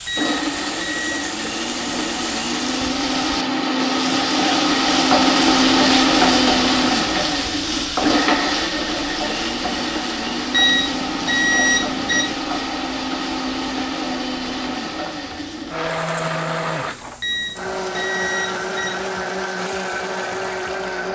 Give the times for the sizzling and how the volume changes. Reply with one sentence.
You can hear the sizzling from 0.0 to 21.1 s, getting louder then quieter.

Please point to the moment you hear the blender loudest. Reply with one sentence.
The volume of the blender peaks at 6 seconds.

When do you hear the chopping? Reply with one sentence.
The chopping can't be heard in this clip.